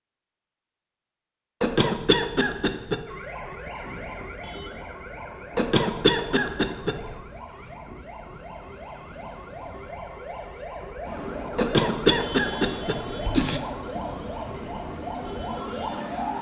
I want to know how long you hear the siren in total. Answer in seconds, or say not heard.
13 s.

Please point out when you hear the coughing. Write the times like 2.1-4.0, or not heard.
1.6-3.0, 5.5-7.2, 11.6-13.6.